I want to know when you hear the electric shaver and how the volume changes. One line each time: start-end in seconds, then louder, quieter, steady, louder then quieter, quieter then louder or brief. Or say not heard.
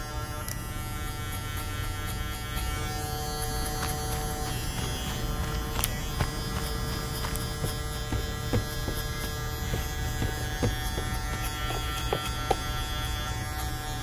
0.0-13.9 steady.